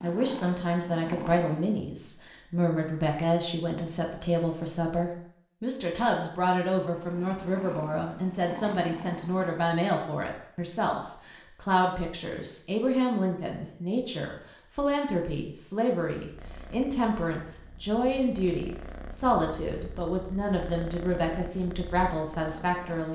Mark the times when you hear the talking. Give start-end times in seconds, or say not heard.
0.0-23.1.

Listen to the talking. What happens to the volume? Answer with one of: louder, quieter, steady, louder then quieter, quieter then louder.
steady.